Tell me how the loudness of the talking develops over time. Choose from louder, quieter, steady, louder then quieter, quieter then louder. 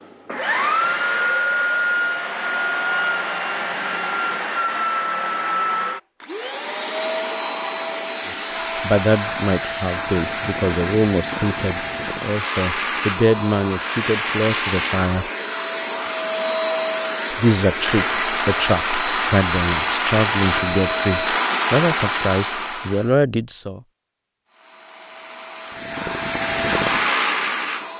steady.